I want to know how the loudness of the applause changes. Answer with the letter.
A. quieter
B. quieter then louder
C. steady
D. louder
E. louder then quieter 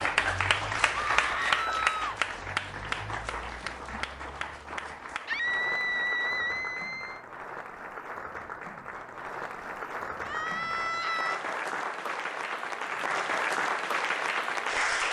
B.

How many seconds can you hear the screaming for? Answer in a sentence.
The screaming can be heard for 4 seconds in total.